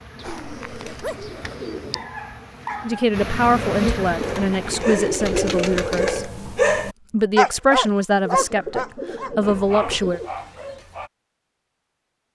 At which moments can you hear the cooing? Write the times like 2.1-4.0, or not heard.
0.2-2.0, 4.2-6.2, 8.2-10.3.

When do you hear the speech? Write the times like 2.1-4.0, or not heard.
2.8-6.2, 7.1-10.2.